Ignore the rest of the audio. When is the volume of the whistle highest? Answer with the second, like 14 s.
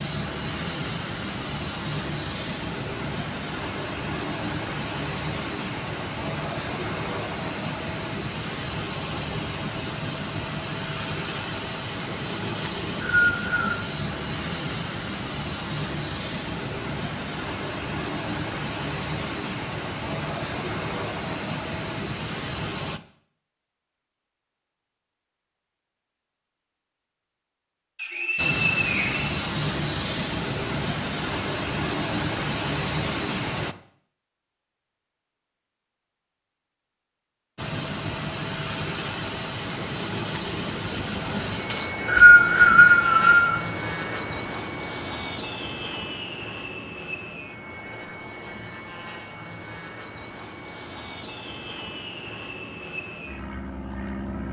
42 s.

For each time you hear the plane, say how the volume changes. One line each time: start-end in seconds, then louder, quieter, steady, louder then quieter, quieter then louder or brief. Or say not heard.
0.0-23.0 steady
28.4-33.8 steady
37.5-54.4 quieter.